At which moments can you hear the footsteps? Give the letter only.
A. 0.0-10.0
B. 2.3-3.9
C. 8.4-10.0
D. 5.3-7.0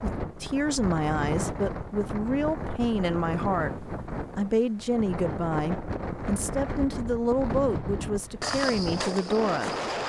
C.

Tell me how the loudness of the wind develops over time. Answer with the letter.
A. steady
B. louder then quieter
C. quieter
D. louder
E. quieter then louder
A.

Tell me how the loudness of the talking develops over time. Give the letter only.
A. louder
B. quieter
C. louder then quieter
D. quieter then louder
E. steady
E.